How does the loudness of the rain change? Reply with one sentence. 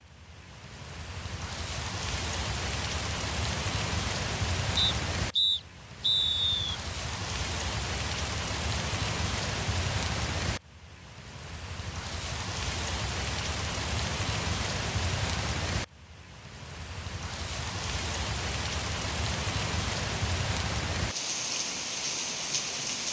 The loudness of the rain stays about the same.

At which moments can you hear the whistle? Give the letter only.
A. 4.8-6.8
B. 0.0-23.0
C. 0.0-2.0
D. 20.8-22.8
A.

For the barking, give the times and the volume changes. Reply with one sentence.
You can't hear the barking here.